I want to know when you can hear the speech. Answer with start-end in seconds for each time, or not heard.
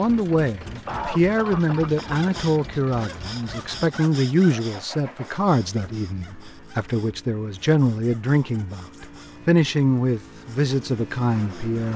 0.0-11.9.